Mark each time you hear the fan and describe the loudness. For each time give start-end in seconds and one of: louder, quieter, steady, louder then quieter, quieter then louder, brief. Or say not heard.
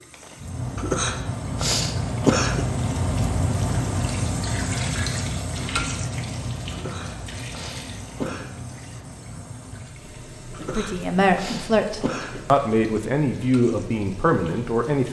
0.0-14.9 quieter.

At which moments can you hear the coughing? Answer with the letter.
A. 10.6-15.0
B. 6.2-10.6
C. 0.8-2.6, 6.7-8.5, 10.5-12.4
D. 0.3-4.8
C.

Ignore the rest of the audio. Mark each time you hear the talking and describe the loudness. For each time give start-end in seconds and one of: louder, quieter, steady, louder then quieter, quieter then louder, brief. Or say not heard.
10.6-15.0 steady.